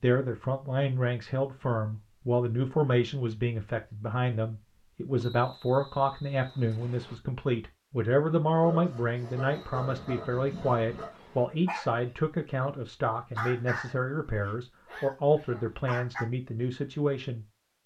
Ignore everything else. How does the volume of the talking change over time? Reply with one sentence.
The volume of the talking stays about the same.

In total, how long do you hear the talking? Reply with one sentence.
The talking can be heard for 18 seconds in total.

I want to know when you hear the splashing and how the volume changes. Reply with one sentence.
You can't hear the splashing here.